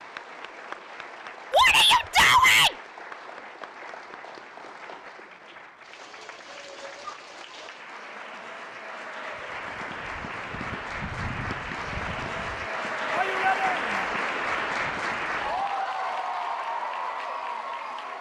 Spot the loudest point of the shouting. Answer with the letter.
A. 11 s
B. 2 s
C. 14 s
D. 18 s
B.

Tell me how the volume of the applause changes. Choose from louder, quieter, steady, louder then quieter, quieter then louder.
louder.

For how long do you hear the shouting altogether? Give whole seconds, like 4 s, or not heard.
2 s.